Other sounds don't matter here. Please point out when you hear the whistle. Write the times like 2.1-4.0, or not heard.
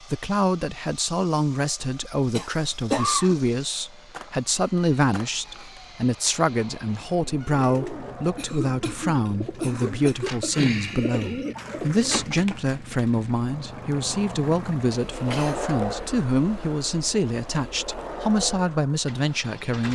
not heard.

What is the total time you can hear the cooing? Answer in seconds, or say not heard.
5 s.